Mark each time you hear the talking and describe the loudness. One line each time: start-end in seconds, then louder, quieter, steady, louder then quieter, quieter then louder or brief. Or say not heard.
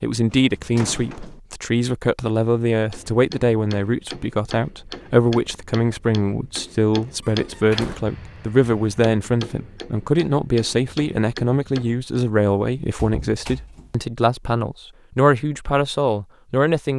0.0-16.9 steady.